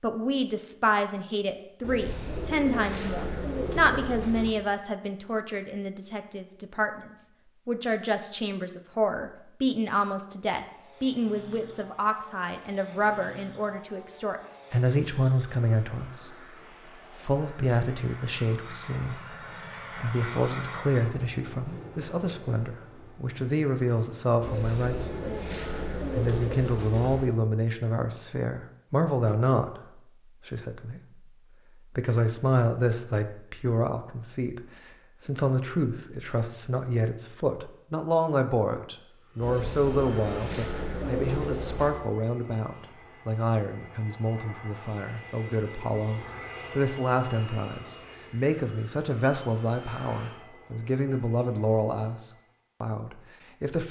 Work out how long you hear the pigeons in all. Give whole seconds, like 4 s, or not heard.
8 s.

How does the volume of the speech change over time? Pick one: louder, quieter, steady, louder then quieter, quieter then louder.
steady.